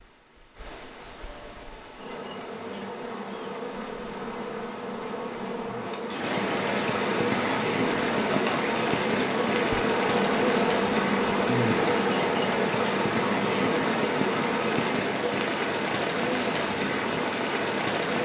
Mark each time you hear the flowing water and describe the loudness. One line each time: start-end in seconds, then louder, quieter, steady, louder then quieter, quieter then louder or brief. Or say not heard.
0.0-18.1 louder.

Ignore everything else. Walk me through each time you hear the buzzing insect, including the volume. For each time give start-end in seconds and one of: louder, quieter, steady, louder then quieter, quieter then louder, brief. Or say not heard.
1.9-14.8 louder.